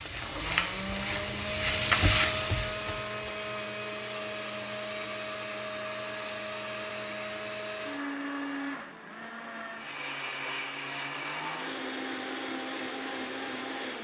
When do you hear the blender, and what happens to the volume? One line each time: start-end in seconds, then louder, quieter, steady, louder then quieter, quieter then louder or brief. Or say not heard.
0.1-13.9 steady.